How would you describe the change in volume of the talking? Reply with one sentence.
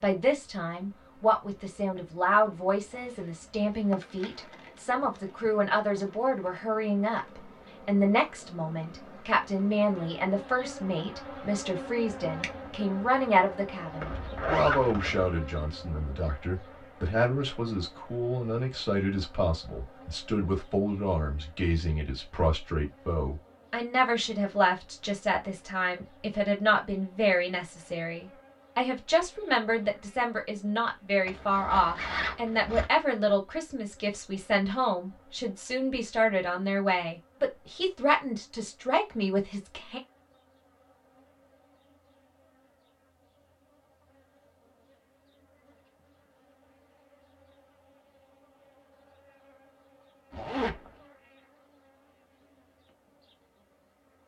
The loudness of the talking stays about the same.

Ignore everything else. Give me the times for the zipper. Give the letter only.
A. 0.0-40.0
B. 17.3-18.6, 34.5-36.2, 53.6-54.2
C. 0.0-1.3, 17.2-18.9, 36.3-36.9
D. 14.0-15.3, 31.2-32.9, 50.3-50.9
D.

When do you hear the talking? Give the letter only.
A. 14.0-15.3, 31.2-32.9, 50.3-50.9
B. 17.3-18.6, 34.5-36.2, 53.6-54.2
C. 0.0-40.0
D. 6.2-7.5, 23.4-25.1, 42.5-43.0
C.